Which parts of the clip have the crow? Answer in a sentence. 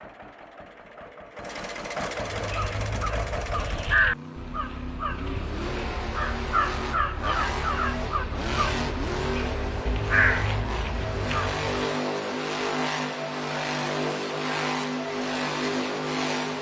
The crow can be heard from 2.3 to 11.8 s.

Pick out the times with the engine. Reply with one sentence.
You can hear the engine from 0.0 to 16.5 s.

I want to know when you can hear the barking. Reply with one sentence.
The barking can't be heard in this clip.